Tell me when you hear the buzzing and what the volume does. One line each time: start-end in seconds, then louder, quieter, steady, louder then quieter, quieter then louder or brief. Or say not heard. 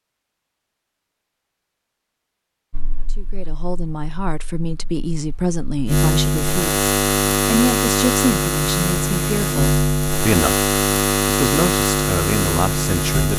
2.7-13.3 louder.